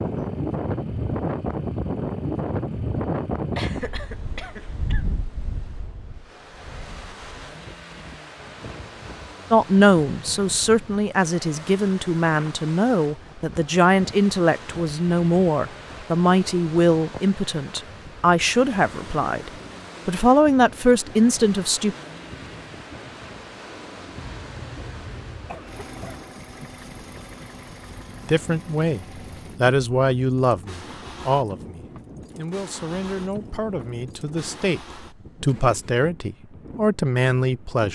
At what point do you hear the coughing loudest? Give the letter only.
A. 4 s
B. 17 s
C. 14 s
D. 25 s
A.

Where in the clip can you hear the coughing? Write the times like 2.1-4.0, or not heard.
3.5-5.0, 24.4-26.2.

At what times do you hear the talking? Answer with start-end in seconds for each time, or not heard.
9.5-21.9, 28.2-34.8, 35.4-37.9.